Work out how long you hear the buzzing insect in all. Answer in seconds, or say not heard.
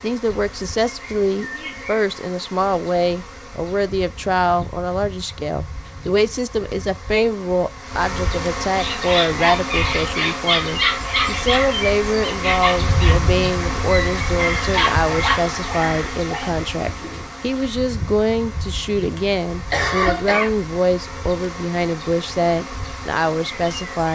24 s.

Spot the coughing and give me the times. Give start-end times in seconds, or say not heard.
19.7-20.5.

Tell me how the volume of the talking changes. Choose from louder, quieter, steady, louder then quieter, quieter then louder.
steady.